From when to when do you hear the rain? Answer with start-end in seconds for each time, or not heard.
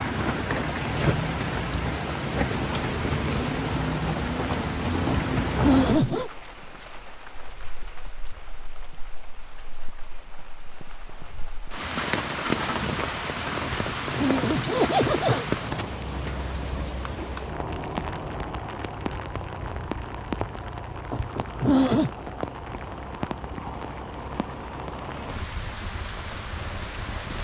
0.0-27.3.